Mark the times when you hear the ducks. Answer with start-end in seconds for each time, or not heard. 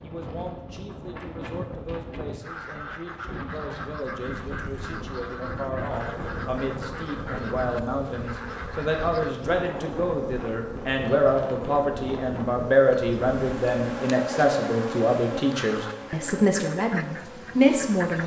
2.4-9.3, 15.5-18.2.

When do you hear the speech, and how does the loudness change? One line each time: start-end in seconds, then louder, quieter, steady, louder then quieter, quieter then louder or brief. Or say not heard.
0.0-18.2 louder.